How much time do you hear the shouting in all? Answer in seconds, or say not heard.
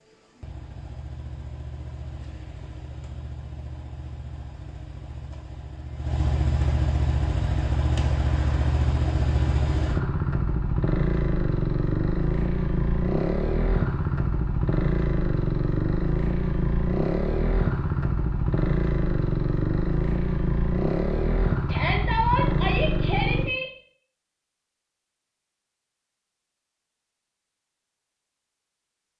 2 s.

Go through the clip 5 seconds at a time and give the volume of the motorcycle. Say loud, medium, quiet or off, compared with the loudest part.
quiet, loud, loud, loud, loud, off.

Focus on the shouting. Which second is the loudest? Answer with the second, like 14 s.
22 s.